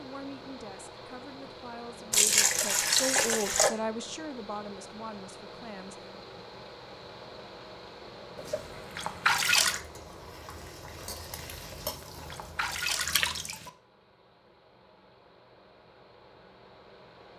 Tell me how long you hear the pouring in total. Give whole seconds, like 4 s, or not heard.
5 s.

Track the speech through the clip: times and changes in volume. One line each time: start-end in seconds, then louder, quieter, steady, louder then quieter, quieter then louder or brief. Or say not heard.
0.0-6.1 louder then quieter.